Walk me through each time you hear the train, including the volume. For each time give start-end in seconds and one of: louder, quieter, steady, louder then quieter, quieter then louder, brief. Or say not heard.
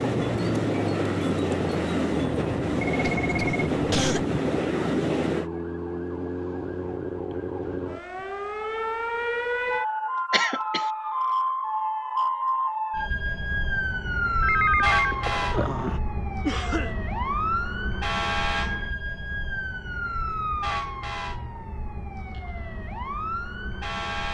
0.0-5.5 steady.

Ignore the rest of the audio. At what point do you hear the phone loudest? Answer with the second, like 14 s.
15 s.